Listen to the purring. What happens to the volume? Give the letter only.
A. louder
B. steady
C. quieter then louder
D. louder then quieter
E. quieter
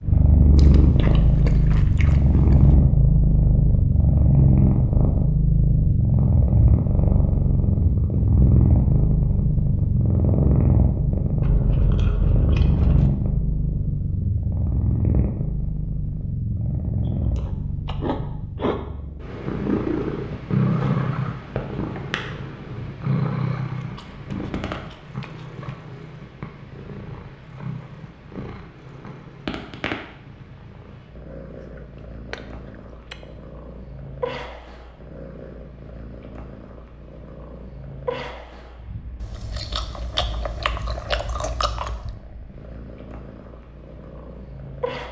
E.